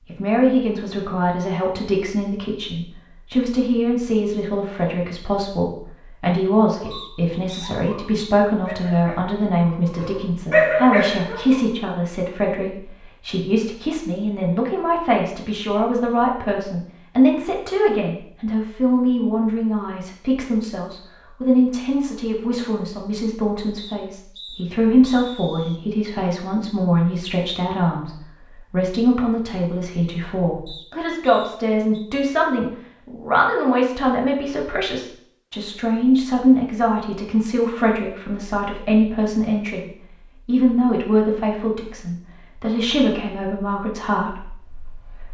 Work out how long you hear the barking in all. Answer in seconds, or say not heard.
5 s.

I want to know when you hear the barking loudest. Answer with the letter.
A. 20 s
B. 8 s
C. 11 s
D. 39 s
C.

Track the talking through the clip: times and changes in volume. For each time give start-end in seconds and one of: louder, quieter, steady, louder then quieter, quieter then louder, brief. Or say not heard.
0.1-45.2 steady.